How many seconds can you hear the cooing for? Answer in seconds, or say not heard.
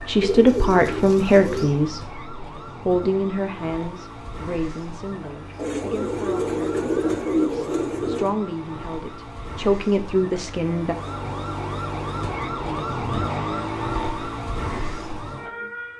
6 s.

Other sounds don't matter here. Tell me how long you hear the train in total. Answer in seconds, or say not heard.
not heard.